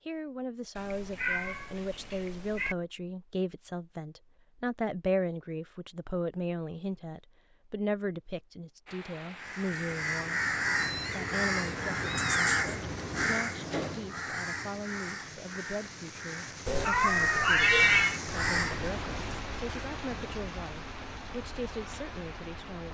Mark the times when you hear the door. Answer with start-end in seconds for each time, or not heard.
12.8-14.1.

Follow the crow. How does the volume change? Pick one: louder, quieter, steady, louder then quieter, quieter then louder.
quieter then louder.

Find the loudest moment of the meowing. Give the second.
18 s.